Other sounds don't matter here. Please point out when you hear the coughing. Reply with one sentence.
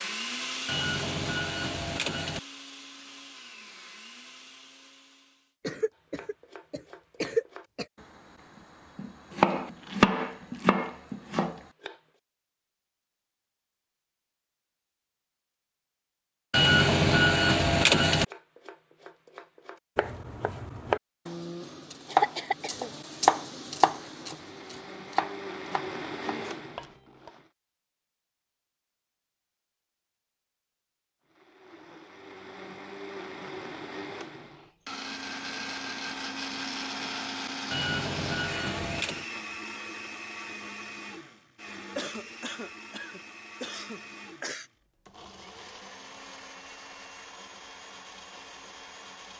The coughing can be heard from 5.6 to 7.8 s, from 21.6 to 22.9 s and from 42.0 to 44.7 s.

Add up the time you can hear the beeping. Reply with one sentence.
The beeping can be heard for 5 seconds in total.